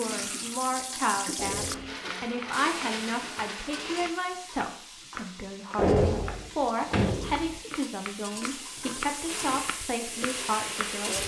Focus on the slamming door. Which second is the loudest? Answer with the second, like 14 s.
6 s.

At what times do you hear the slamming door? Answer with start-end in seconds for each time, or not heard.
1.4-1.9, 5.8-7.6.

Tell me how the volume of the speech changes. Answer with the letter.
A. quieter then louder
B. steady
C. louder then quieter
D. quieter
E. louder
B.